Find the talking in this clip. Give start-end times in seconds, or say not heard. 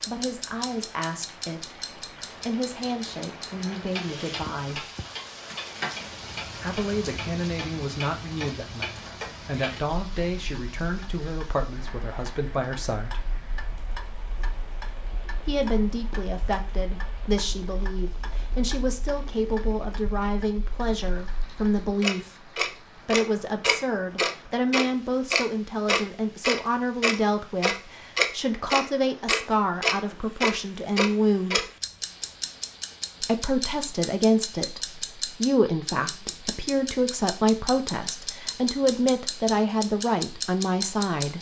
0.1-4.9, 6.6-13.2, 15.4-31.7, 33.2-41.3.